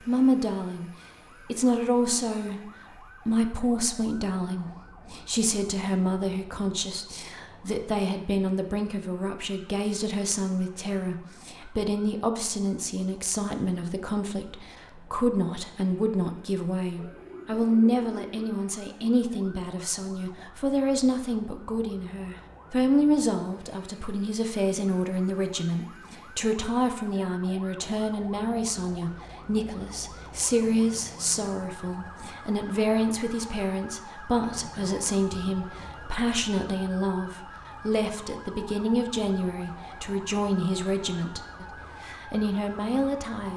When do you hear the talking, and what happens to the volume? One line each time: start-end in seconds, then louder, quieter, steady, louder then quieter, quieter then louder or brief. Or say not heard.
0.0-43.5 steady.